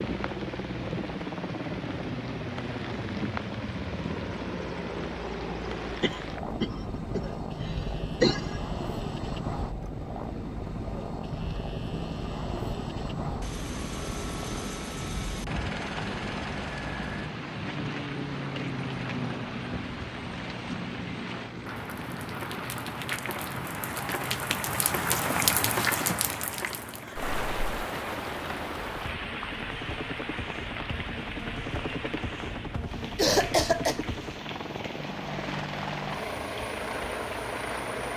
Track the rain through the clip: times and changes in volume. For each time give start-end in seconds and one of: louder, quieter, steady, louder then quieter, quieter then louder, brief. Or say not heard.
0.0-38.1 louder then quieter.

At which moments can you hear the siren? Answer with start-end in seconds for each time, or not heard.
not heard.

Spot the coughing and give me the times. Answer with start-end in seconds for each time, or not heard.
6.0-8.6, 33.1-34.0.